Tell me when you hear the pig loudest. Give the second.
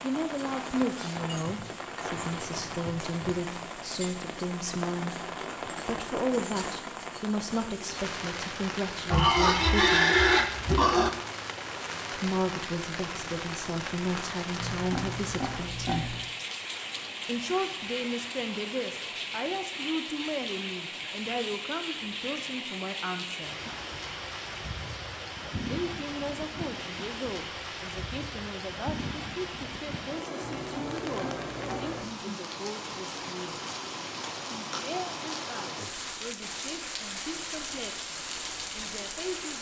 10 s.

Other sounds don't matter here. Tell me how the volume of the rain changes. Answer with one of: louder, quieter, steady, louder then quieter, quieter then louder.
steady.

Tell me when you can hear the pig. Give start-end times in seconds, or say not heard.
9.1-11.1, 14.6-16.3, 30.4-32.1.